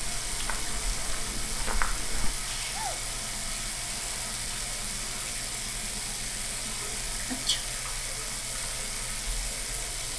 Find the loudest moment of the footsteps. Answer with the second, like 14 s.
2 s.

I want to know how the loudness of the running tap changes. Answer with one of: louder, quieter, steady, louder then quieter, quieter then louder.
steady.